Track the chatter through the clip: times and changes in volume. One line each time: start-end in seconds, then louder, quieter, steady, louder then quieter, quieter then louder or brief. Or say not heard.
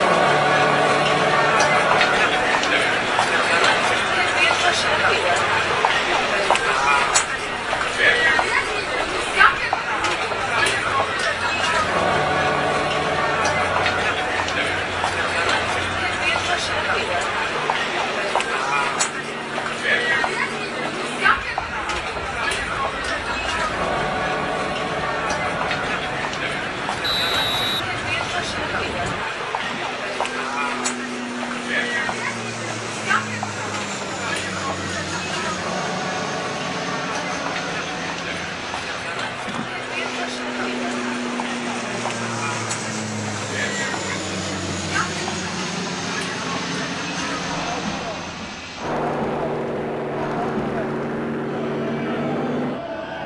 0.0-53.2 quieter.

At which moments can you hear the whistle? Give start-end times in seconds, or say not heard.
27.0-27.9.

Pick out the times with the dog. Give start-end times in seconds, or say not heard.
not heard.